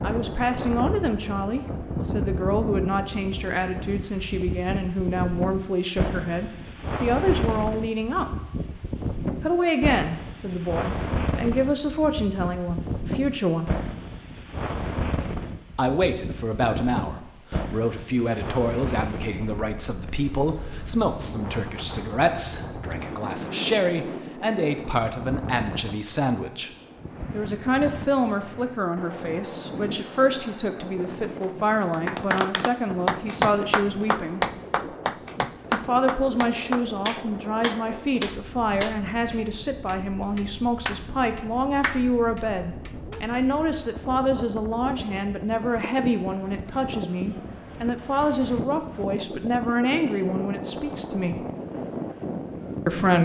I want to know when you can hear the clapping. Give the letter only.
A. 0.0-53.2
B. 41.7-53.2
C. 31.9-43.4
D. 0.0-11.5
C.